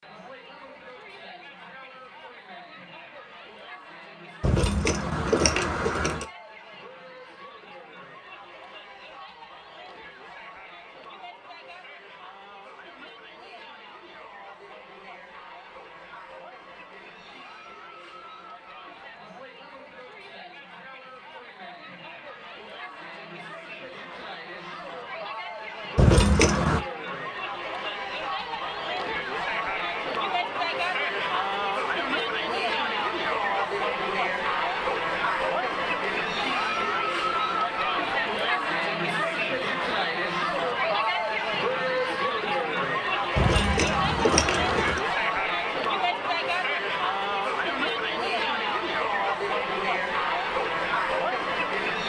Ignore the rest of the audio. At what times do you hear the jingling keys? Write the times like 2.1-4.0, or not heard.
4.4-6.2, 25.9-26.8, 43.4-45.0.